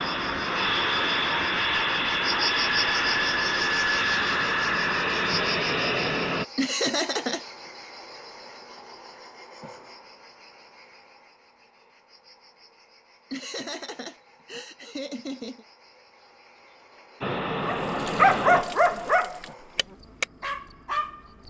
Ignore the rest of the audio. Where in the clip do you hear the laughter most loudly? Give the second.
7 s.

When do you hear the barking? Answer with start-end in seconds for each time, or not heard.
17.6-21.2.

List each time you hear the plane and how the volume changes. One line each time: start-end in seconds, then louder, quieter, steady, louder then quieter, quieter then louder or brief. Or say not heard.
0.0-6.5 steady
17.2-19.2 brief.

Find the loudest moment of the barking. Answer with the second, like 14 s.
18 s.